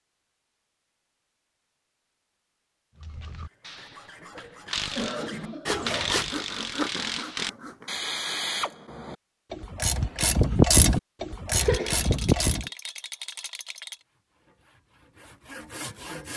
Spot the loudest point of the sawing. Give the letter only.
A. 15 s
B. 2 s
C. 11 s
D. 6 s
D.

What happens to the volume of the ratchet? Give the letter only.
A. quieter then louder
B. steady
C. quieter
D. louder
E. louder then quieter
D.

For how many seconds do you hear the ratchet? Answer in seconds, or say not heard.
10 s.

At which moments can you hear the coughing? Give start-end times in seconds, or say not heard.
4.3-6.2, 11.6-12.1.